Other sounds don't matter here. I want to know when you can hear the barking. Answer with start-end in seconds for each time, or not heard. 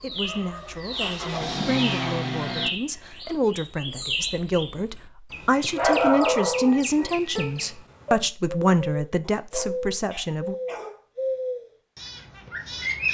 0.1-1.6, 5.8-7.2, 9.3-11.0.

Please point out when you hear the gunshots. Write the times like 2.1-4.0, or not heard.
not heard.